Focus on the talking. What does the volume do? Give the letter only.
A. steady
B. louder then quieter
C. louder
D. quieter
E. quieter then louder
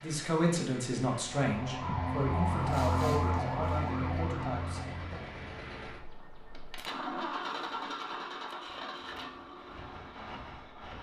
D.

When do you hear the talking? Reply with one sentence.
The talking can be heard from 0.0 to 5.3 s.